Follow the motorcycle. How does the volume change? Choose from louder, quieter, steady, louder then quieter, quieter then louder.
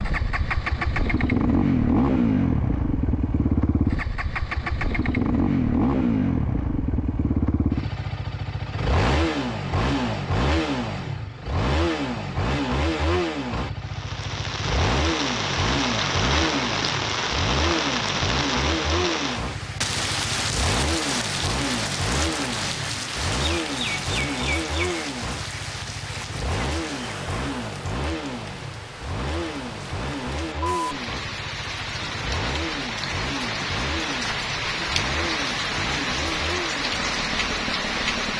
quieter.